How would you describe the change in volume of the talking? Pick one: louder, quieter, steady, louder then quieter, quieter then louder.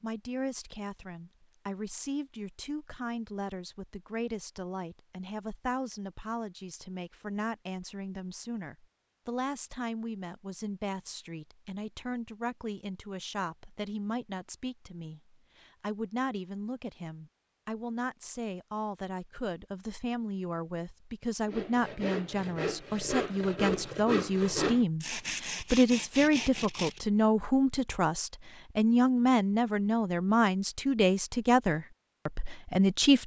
louder.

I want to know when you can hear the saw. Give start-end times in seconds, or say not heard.
21.4-27.5.